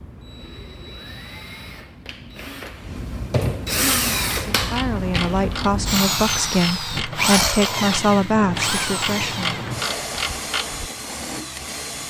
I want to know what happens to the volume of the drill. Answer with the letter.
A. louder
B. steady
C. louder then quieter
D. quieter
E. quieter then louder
C.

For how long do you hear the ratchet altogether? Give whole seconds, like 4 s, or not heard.
7 s.